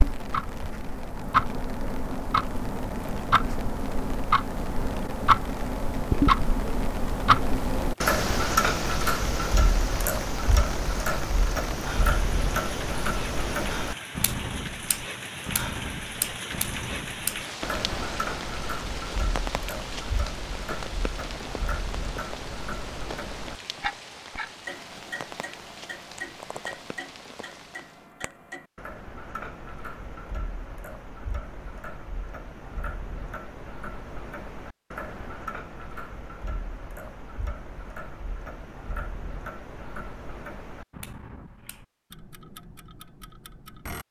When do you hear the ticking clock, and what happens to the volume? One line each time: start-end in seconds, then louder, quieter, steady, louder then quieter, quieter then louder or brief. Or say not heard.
0.0-44.0 quieter.